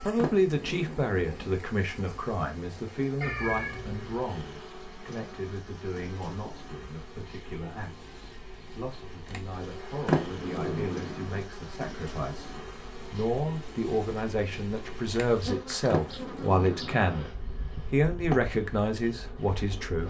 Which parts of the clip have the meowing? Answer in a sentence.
The meowing can be heard from 3.2 to 4.2 s.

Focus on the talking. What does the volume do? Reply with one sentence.
The volume of the talking goes down, then up.